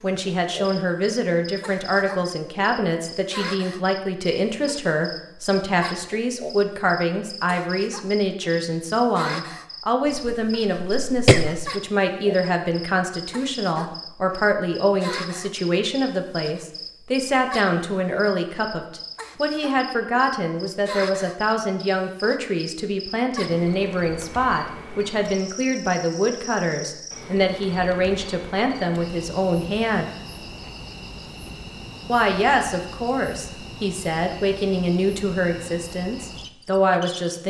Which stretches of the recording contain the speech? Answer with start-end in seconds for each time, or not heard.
0.0-30.1, 32.0-37.4.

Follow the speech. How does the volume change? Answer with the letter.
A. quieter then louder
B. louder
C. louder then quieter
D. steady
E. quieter
D.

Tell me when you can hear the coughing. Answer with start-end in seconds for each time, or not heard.
10.2-11.7.